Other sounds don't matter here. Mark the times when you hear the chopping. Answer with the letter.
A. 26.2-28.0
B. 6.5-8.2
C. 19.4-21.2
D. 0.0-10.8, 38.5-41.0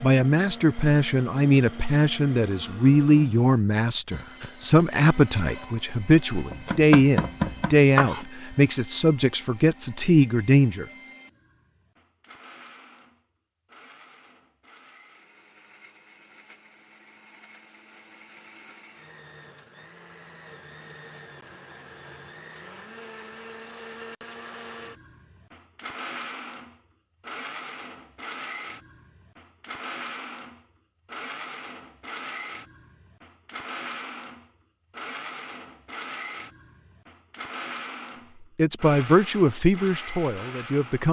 B.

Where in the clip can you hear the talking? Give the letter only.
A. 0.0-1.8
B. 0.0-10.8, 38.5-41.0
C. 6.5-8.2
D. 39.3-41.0
B.